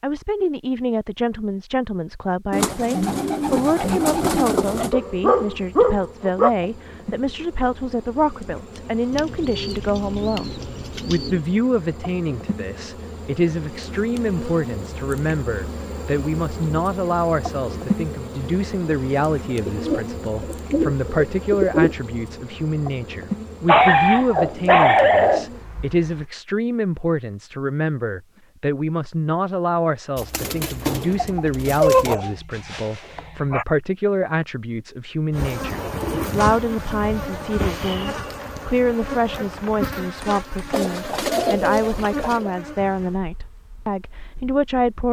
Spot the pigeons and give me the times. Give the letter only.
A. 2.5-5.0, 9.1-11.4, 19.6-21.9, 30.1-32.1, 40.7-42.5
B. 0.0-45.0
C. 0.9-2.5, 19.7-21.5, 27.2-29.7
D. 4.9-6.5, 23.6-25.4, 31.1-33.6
A.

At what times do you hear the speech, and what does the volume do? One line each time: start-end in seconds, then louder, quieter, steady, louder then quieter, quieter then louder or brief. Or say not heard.
0.0-45.0 steady.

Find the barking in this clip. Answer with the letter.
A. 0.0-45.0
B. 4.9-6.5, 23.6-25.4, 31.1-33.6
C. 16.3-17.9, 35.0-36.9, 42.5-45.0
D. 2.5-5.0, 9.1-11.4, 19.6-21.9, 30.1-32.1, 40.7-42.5
B.